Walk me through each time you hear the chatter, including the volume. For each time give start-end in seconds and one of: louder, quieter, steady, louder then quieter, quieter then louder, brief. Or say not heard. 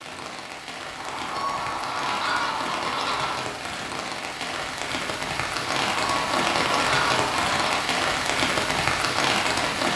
not heard.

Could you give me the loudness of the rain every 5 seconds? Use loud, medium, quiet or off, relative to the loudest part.
medium, loud.